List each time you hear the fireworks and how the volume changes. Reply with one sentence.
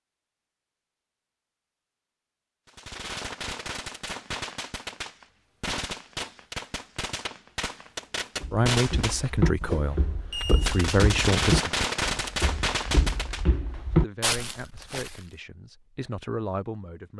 The fireworks can be heard from 2.6 to 13.4 s, getting louder.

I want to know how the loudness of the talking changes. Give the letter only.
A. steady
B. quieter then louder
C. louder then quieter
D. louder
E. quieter
B.